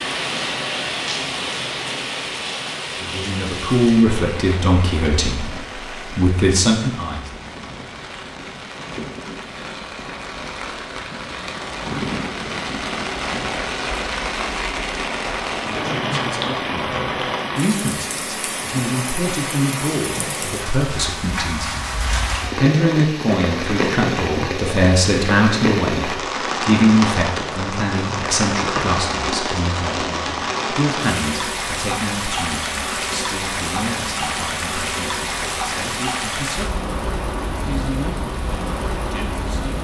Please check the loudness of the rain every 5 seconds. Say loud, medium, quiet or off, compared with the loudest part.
loud, medium, loud, loud, loud, loud, loud, loud.